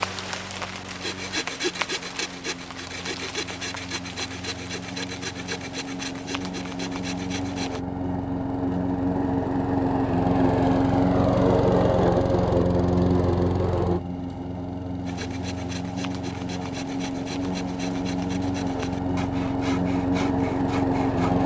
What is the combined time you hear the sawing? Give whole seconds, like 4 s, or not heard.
14 s.